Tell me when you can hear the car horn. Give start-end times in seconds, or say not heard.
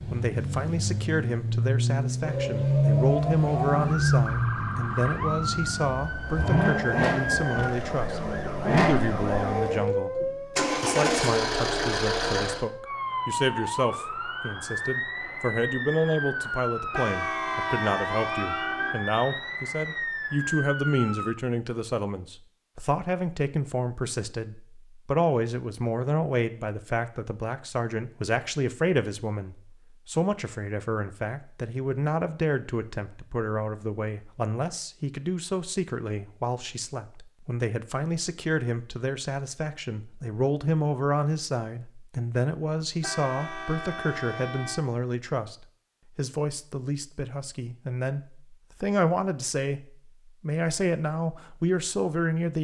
16.9-18.9, 43.0-44.9.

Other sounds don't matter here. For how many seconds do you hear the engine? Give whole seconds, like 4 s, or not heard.
13 s.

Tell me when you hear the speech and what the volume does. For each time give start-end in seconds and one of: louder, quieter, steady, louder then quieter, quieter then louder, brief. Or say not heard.
0.0-52.5 steady.